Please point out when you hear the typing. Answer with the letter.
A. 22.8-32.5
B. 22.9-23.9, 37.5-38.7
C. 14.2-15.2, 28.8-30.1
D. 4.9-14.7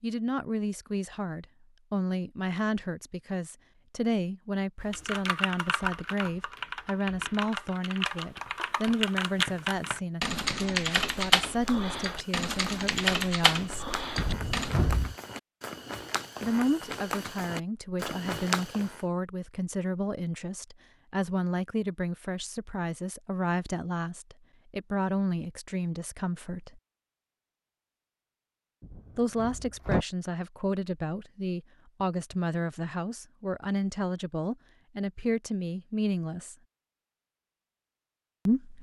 D.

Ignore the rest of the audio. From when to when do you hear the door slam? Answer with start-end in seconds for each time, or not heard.
14.2-15.2, 28.8-30.1.